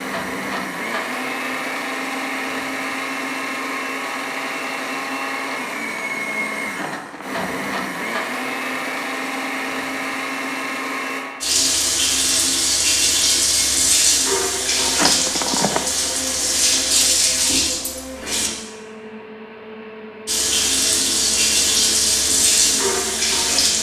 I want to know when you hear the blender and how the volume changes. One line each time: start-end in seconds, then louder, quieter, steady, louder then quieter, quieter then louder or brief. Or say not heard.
0.0-23.7 quieter.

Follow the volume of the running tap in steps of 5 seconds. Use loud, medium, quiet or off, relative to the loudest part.
off, off, loud, loud, loud.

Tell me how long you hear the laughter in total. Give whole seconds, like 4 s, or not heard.
2 s.